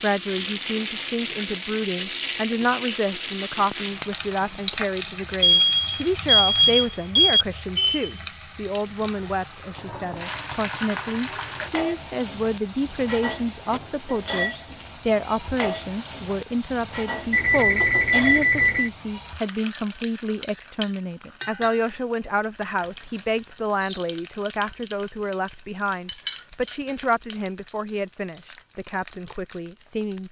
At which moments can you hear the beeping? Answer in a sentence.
You can hear the beeping from 5.4 to 7.5 s and from 17.3 to 18.9 s.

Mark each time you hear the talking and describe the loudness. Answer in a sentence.
The talking can be heard from 0.0 to 30.2 s, at a steady volume.